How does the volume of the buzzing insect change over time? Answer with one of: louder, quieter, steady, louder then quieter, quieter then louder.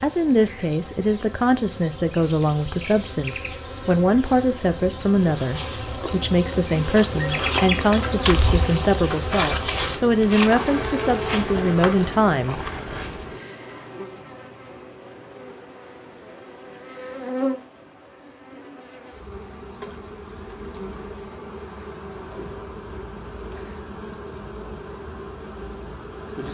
louder then quieter.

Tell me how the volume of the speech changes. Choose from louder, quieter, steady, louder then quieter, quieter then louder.
steady.